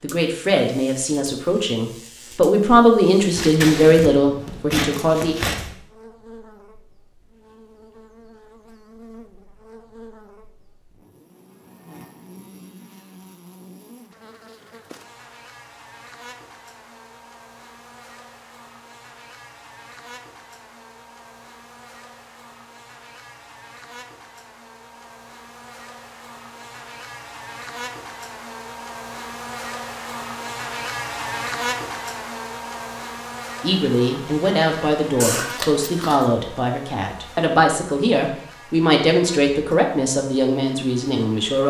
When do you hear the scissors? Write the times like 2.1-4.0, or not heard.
3.3-5.8, 35.2-36.2.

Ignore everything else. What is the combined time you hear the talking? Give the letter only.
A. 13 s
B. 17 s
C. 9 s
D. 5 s
A.